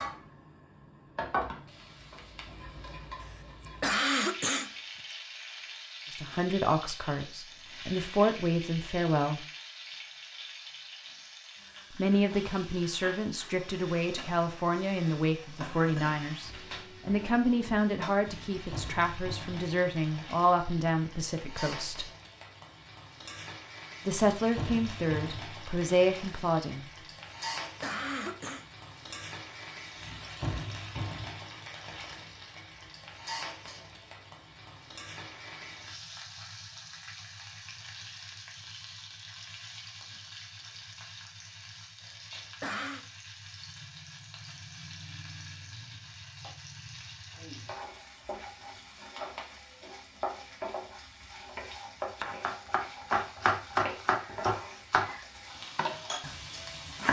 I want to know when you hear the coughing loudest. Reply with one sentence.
The volume of the coughing peaks at 4 seconds.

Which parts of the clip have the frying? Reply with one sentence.
You can hear the frying from 0.0 to 57.0 s.